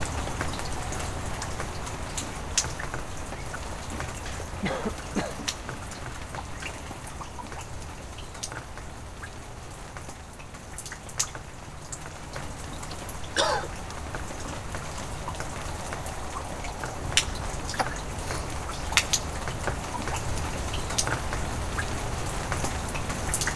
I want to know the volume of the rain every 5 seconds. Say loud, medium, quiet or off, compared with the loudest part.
loud, medium, medium, loud, loud.